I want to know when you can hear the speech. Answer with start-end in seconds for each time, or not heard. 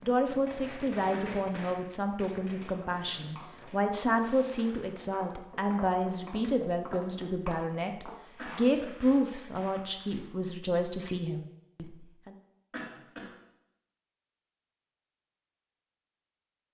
0.0-12.3.